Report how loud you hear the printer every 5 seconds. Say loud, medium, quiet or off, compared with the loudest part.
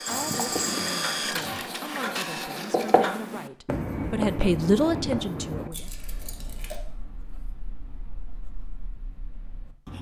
loud, off.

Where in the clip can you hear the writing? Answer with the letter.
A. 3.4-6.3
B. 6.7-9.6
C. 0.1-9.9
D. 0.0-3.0
C.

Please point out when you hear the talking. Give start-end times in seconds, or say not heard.
0.0-5.9.